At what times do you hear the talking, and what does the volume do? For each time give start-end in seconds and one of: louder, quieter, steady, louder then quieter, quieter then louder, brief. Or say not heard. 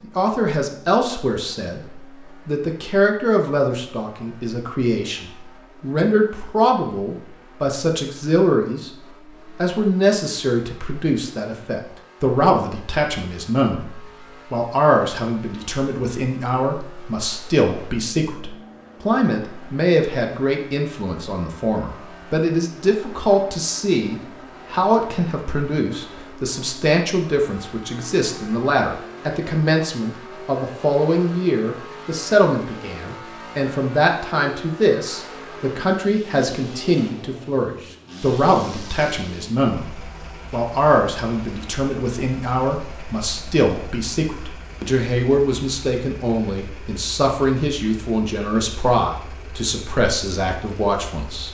0.0-51.4 steady.